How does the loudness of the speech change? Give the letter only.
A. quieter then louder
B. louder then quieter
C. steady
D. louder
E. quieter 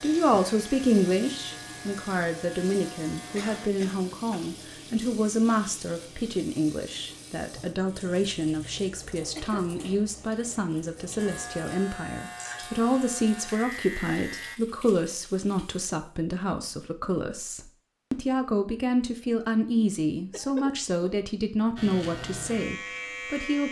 C.